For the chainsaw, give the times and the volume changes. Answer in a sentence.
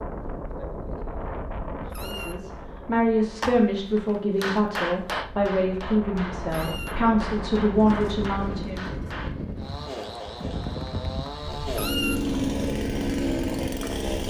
You can hear the chainsaw from 9.6 to 14.2 s, getting louder.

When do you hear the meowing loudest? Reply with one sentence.
The volume of the meowing peaks at 12 seconds.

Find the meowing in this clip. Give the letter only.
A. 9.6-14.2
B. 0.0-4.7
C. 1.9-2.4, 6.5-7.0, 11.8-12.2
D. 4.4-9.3
C.